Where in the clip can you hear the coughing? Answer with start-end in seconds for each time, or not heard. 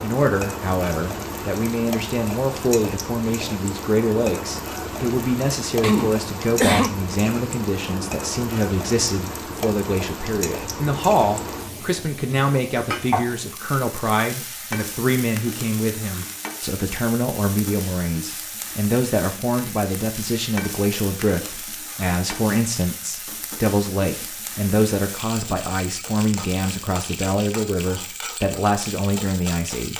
5.8-6.9.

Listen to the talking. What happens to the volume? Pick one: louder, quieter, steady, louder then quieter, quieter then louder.
steady.